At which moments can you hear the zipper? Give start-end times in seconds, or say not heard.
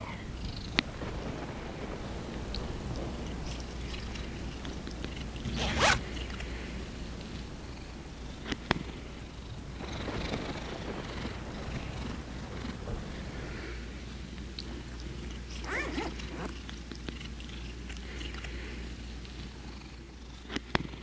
5.5-6.0, 14.7-16.6.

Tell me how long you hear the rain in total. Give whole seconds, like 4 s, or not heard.
14 s.